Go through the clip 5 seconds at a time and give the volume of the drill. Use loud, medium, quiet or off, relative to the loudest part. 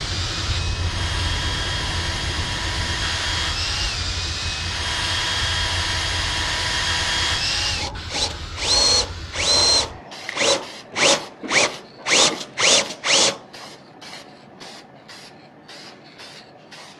medium, loud, loud, off.